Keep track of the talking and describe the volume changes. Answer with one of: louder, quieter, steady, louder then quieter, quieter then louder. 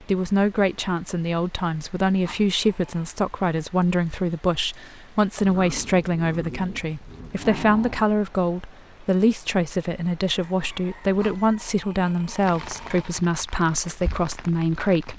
steady.